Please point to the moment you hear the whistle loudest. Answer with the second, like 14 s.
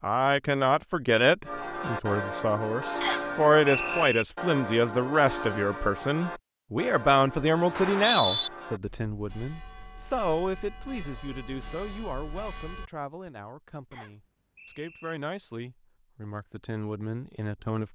8 s.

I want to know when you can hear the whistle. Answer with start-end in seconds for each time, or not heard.
3.0-4.2, 7.8-8.5, 13.9-15.2.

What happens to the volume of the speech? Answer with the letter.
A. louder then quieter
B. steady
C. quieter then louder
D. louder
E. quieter
E.